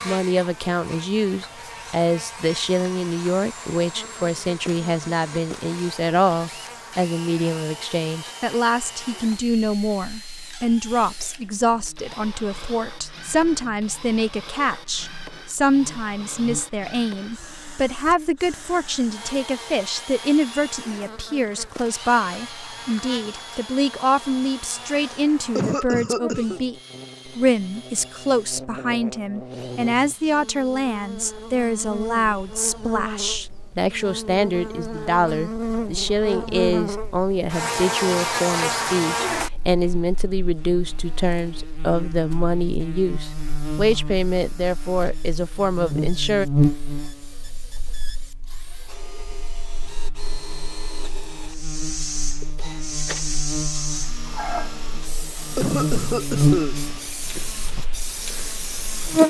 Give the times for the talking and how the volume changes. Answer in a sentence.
The talking can be heard from 0.1 to 46.5 s, at a steady volume.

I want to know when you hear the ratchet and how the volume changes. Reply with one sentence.
You can't hear the ratchet here.